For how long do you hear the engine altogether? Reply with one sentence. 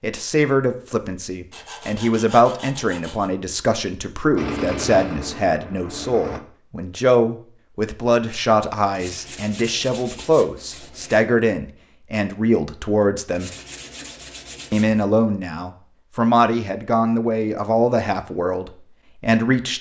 You can hear the engine for 2 seconds altogether.